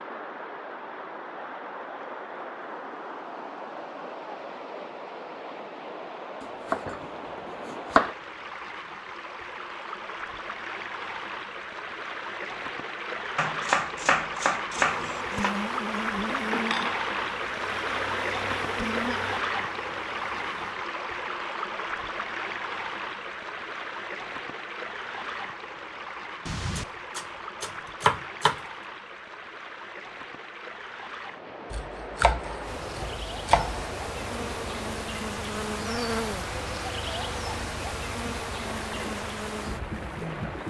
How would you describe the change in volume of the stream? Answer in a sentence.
The volume of the stream goes up, then down.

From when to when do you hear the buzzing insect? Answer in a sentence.
You can hear the buzzing insect from 14.7 to 20.8 s and from 32.6 to 40.6 s.